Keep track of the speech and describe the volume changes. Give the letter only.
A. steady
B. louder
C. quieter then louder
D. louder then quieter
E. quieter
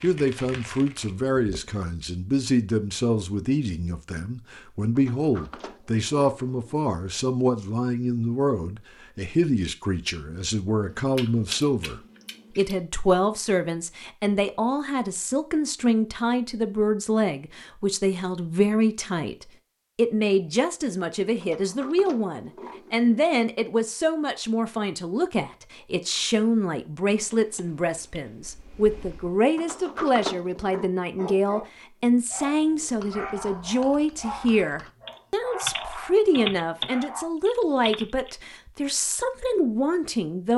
A.